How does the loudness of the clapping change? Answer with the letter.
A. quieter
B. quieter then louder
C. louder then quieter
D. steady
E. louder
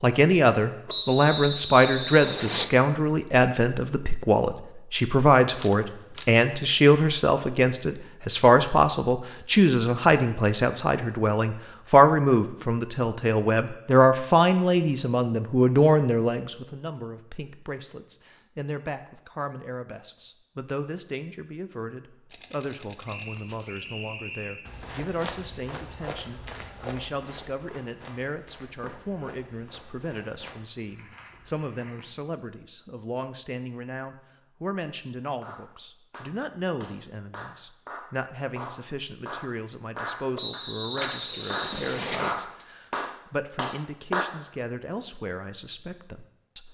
E.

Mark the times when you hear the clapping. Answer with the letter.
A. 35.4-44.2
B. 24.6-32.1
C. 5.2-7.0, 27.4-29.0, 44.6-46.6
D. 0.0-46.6
A.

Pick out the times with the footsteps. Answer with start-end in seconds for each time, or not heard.
24.6-32.1.